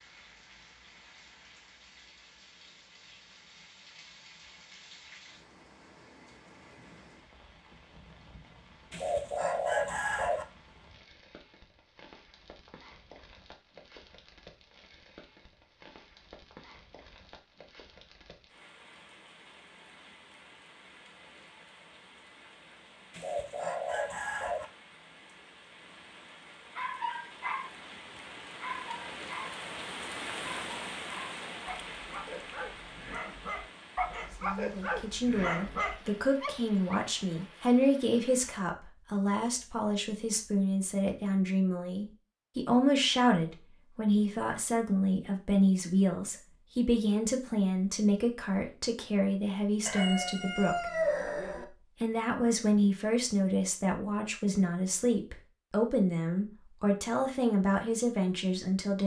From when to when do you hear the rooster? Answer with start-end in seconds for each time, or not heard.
8.9-10.4, 23.1-24.6, 49.9-51.6.